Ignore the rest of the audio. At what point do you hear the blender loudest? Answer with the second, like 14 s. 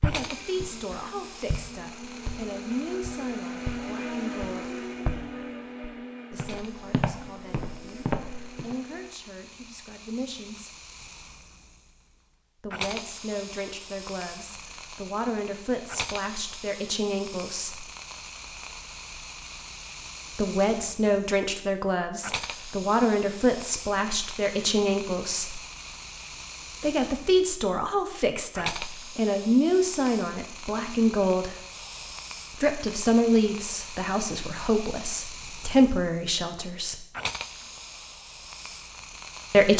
4 s.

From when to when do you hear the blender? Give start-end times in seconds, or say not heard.
0.1-9.2.